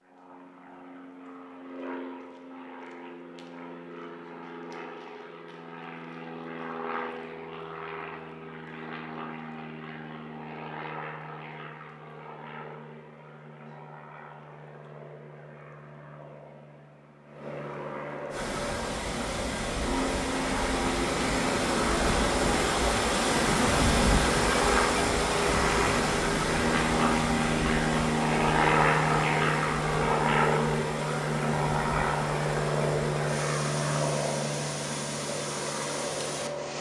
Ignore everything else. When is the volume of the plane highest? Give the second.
29 s.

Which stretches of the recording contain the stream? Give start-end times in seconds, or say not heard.
18.3-36.7.